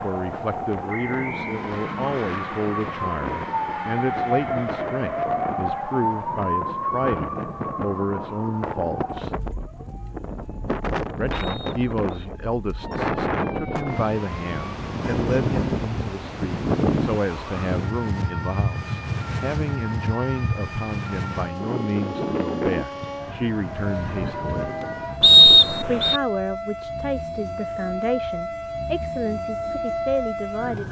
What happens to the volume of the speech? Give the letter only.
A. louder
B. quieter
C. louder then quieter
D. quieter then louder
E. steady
E.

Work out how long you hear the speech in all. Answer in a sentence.
You can hear the speech for 28 seconds altogether.